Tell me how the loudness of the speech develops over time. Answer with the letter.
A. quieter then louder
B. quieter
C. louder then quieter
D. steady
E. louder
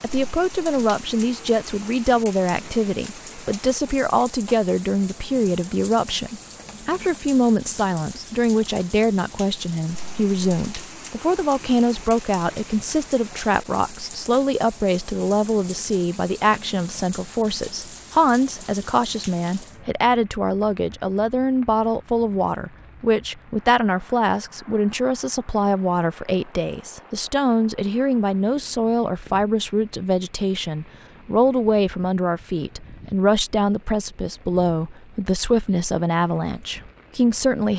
D.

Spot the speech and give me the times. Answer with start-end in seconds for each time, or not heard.
0.0-37.7.